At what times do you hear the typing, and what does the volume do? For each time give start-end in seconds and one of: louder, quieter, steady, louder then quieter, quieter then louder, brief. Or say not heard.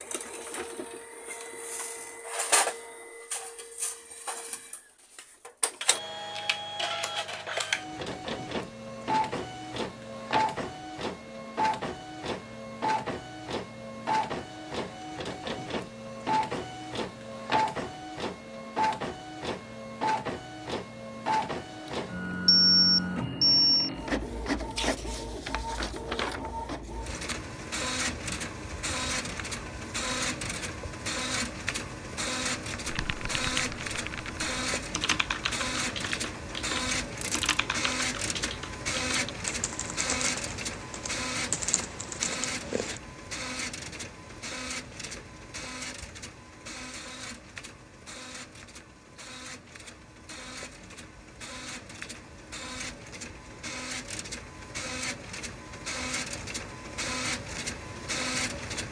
32.9-43.0 steady.